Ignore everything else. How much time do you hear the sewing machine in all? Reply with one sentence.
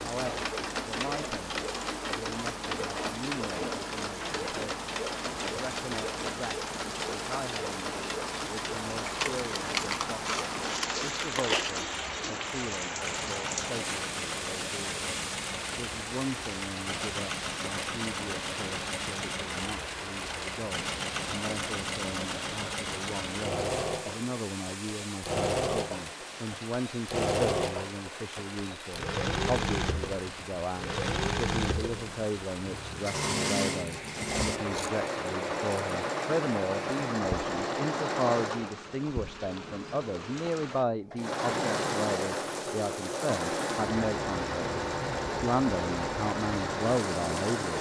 The sewing machine can be heard for 48 seconds in total.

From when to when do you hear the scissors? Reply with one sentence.
You can hear the scissors from 9.1 to 11.8 s and from 34.2 to 35.0 s.